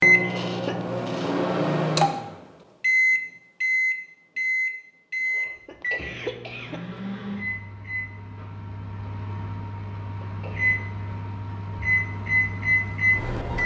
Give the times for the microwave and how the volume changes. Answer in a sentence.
The microwave can be heard from 0.0 to 13.6 s, getting quieter then louder.